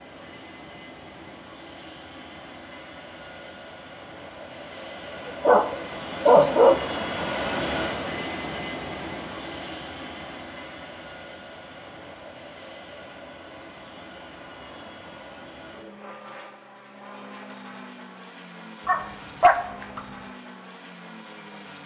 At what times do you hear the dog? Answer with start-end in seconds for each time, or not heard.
5.2-6.8, 18.9-20.1.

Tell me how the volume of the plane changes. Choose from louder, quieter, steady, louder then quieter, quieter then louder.
louder then quieter.